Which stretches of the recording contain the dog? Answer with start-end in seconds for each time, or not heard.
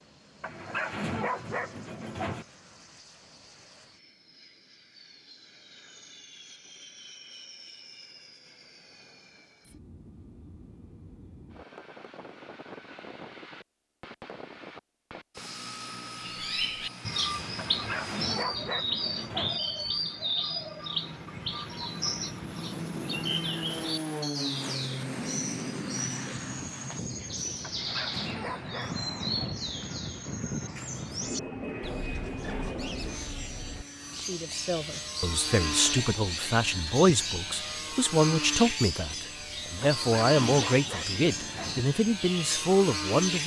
0.4-2.5, 17.6-19.6, 27.6-29.5, 39.8-41.9.